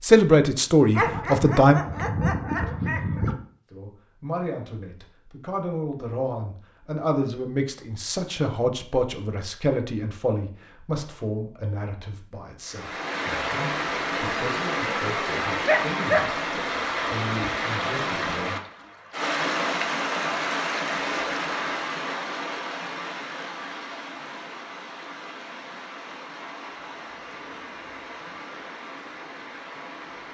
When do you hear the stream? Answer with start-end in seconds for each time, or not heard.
12.7-30.2.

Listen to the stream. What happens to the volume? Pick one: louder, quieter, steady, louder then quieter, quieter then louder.
quieter.